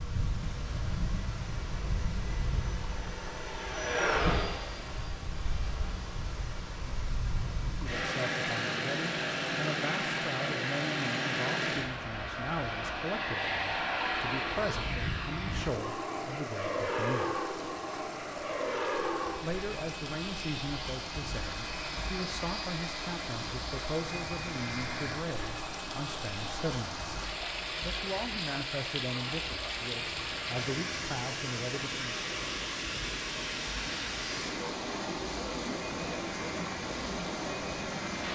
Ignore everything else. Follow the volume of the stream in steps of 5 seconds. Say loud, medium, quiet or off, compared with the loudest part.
medium, medium, medium, medium, medium, loud, loud, loud.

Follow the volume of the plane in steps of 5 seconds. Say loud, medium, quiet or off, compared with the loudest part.
loud, loud, loud, loud, medium, medium, medium, medium.